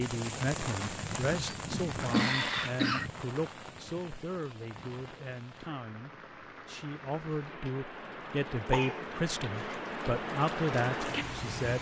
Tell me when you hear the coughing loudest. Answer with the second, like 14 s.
2 s.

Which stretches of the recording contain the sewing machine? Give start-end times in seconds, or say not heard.
not heard.